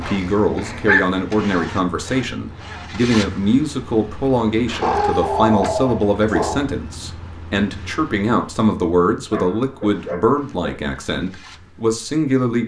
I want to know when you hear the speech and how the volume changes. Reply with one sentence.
The speech can be heard from 0.0 to 12.6 s, at a steady volume.